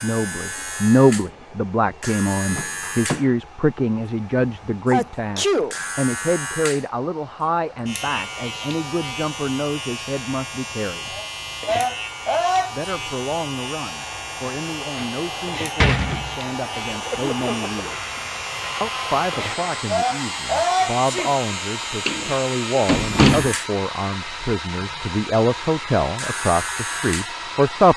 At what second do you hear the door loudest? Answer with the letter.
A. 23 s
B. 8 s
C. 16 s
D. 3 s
A.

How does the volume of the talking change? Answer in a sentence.
The volume of the talking goes down, then up.